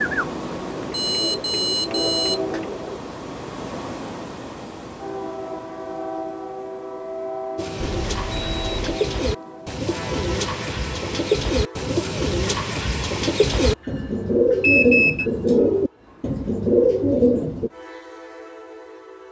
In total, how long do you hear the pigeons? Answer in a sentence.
The pigeons can be heard for 13 seconds in total.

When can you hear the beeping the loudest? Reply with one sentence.
The volume of the beeping peaks at 15 seconds.